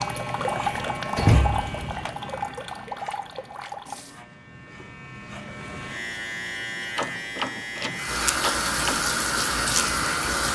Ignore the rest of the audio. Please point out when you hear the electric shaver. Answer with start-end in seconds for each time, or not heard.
0.0-10.4.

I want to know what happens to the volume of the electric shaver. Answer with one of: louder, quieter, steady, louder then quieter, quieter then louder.
quieter then louder.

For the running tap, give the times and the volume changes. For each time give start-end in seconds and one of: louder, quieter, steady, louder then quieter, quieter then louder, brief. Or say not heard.
0.0-4.2 quieter
8.0-10.5 brief.